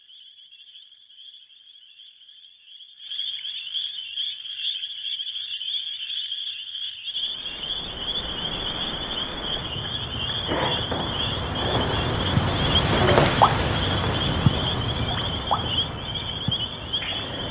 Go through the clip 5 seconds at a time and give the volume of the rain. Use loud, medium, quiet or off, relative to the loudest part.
off, quiet, loud, medium.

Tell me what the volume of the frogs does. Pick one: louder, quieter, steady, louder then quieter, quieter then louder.
louder.